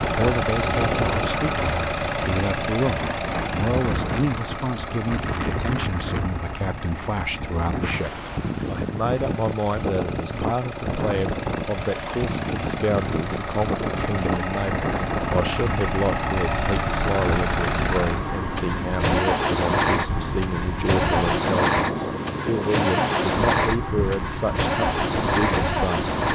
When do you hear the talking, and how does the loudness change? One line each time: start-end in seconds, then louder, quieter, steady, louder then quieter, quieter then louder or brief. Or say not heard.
0.1-26.3 steady.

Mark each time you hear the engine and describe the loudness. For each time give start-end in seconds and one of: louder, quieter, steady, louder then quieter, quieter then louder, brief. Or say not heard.
0.0-26.3 quieter then louder.